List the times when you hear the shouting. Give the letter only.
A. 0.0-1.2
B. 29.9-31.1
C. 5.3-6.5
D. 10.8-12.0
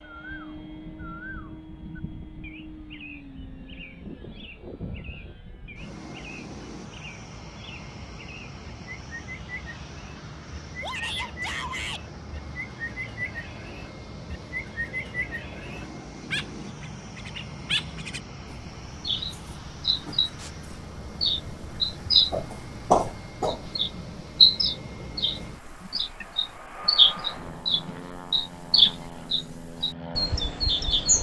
D.